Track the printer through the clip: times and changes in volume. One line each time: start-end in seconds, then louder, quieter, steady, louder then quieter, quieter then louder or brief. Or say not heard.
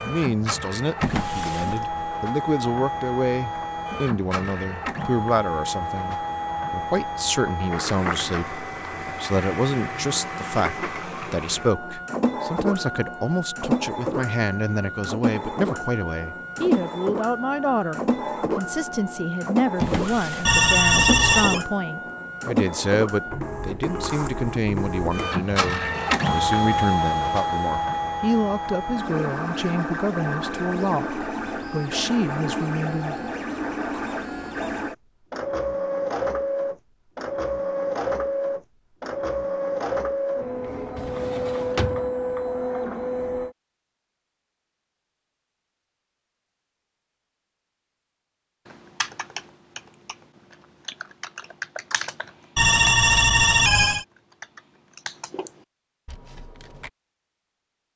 0.0-43.5 steady.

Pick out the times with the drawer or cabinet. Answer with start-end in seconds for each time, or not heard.
1.0-2.0, 19.8-20.6, 41.0-42.1.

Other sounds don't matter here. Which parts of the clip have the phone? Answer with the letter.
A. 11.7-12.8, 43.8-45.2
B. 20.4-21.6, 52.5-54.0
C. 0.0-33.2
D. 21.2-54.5
B.